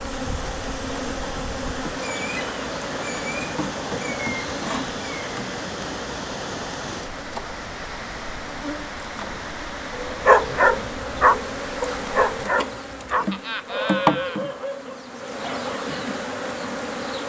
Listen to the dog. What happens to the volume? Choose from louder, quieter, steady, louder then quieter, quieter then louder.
quieter.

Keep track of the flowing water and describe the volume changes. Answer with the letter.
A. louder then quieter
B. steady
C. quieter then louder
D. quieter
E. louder
B.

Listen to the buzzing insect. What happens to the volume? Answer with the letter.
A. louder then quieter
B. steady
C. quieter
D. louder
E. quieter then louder
E.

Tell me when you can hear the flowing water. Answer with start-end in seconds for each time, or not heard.
0.0-12.6.